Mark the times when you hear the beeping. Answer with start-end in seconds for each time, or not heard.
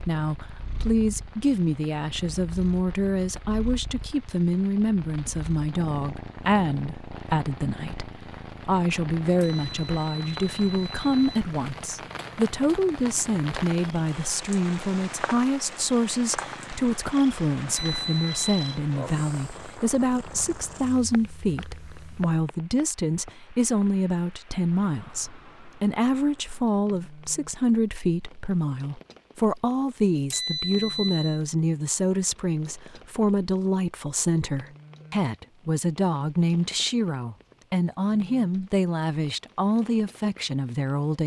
9.4-11.4, 17.7-18.6, 30.3-31.4.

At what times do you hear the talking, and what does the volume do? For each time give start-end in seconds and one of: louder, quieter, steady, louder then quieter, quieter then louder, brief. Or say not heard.
0.0-41.2 steady.